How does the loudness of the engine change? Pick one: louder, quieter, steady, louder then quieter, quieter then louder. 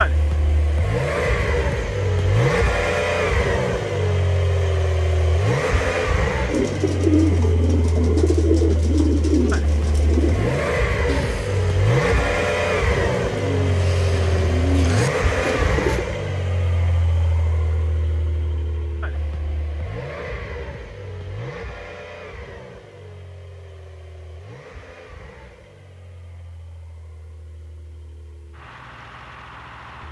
quieter.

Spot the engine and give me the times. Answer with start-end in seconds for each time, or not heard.
0.0-30.0.